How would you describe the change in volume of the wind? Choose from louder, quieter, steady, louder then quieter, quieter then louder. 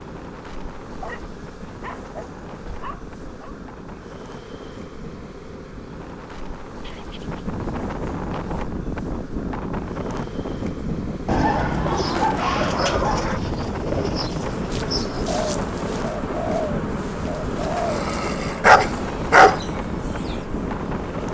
louder.